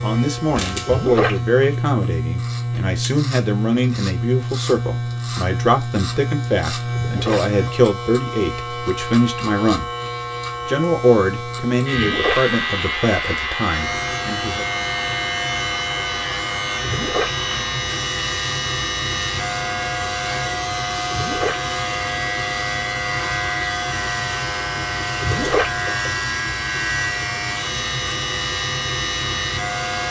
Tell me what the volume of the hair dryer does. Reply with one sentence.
The loudness of the hair dryer stays about the same.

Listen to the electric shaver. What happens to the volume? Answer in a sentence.
The volume of the electric shaver stays about the same.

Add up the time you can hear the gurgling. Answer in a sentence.
The gurgling can be heard for 3 seconds in total.